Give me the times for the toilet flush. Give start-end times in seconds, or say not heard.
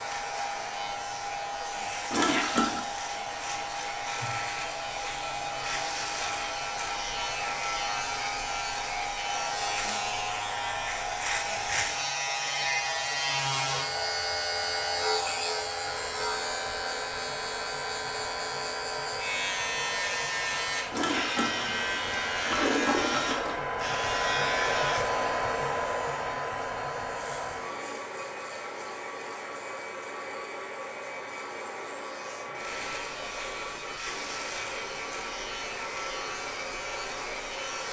2.1-2.9, 20.9-23.6.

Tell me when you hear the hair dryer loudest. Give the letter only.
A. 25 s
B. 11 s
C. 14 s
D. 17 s
A.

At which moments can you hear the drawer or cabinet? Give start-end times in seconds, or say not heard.
not heard.